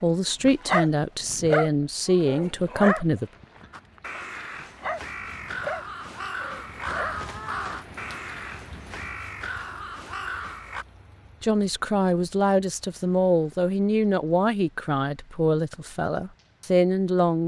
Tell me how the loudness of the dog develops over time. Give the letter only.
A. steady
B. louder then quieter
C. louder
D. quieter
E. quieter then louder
E.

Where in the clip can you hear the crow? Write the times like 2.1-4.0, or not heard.
3.7-10.8.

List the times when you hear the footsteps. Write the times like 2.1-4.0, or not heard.
not heard.